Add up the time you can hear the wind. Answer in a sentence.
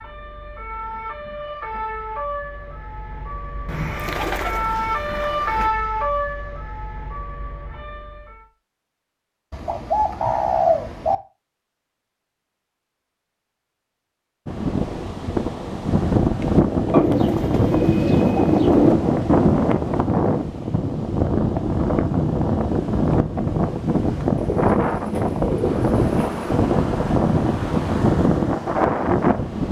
The wind can be heard for 15 seconds in total.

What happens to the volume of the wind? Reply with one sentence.
The loudness of the wind stays about the same.